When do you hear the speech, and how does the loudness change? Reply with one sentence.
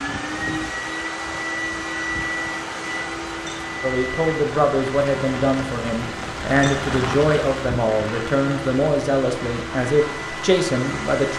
The speech can be heard from 3.8 to 11.3 s, at a steady volume.